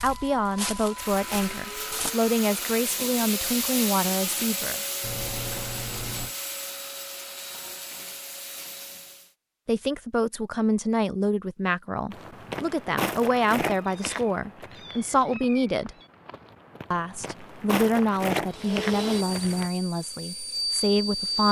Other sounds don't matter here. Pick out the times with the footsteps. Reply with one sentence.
You can hear the footsteps from 0.0 to 2.1 s and from 12.1 to 19.7 s.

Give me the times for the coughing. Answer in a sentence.
The coughing can't be heard in this clip.